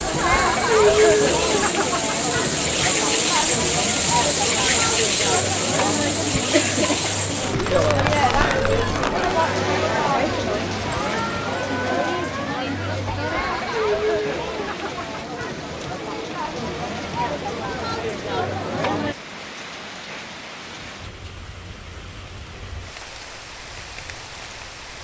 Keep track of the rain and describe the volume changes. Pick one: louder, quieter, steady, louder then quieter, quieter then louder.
quieter.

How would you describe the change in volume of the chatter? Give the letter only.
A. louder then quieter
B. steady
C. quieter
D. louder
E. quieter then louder
C.